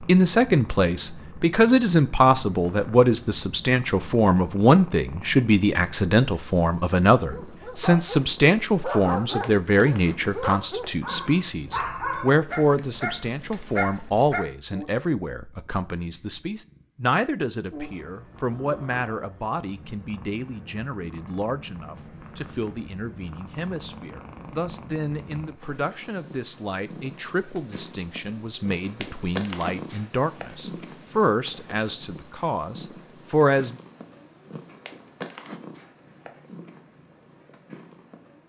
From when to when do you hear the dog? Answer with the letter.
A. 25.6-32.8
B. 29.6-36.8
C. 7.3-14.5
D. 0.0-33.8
C.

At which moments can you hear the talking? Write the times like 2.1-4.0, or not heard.
0.0-33.8.